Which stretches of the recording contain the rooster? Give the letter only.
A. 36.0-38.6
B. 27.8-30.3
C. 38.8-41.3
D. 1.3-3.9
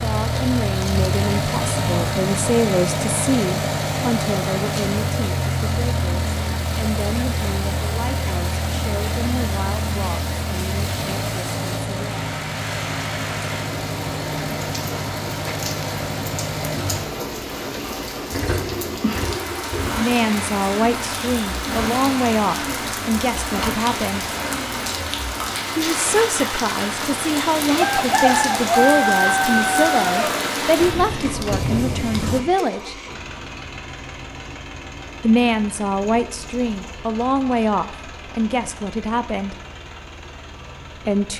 B.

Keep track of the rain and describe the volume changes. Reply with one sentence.
The loudness of the rain goes up.